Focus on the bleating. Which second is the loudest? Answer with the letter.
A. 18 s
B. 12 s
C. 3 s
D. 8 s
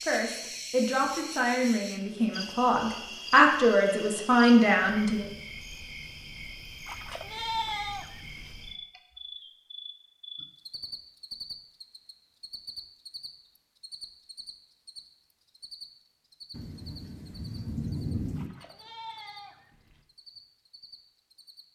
D.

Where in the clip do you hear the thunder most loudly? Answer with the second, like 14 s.
18 s.